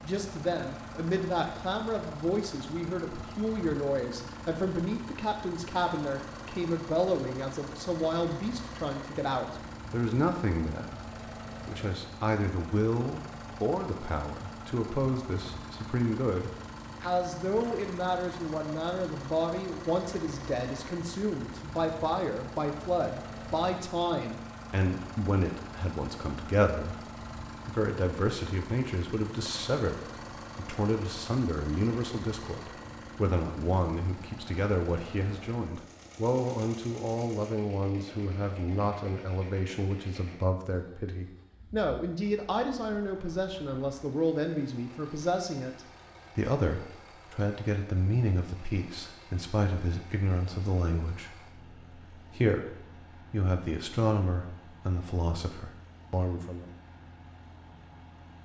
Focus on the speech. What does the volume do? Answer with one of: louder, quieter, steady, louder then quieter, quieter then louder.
steady.